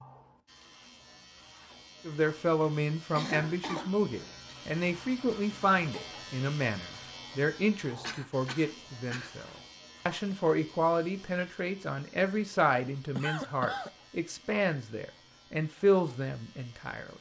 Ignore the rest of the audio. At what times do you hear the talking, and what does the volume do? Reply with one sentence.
The talking can be heard from 2.0 to 17.1 s, at a steady volume.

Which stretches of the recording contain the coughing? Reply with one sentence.
You can hear the coughing from 3.1 to 4.0 s, from 8.0 to 9.3 s and from 13.2 to 13.9 s.